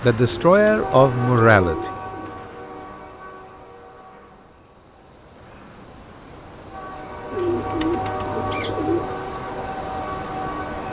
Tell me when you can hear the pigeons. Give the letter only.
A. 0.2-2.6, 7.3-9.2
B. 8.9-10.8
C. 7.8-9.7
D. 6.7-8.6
A.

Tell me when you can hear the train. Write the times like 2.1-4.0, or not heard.
0.0-10.8.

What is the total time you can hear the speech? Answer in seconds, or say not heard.
2 s.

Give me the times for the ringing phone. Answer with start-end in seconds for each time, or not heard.
not heard.